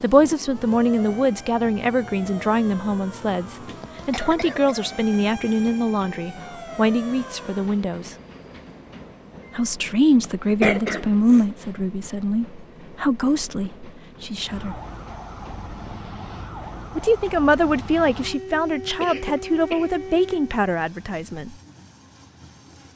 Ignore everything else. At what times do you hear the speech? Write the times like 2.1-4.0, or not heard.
0.0-8.2, 9.6-14.8, 16.9-21.6.